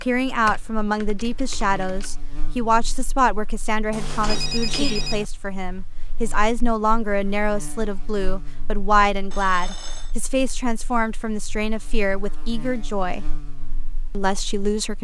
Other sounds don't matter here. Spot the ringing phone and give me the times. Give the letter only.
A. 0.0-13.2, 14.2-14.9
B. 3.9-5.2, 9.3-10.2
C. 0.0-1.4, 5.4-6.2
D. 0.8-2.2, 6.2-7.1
B.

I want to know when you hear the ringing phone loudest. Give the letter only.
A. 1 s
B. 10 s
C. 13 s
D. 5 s
D.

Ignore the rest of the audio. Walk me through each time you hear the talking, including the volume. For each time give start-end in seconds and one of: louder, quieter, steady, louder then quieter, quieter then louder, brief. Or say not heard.
0.0-13.2 steady
14.2-14.9 brief.